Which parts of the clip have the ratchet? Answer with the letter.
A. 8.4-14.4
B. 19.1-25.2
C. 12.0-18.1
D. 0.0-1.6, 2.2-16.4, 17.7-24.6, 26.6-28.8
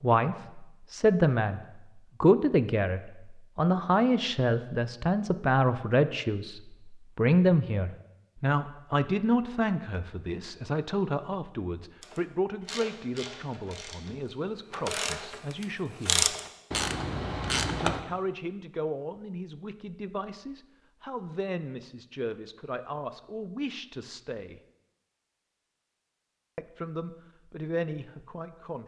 C.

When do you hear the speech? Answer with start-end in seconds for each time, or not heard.
0.0-1.6, 2.2-16.4, 17.7-24.6, 26.6-28.8.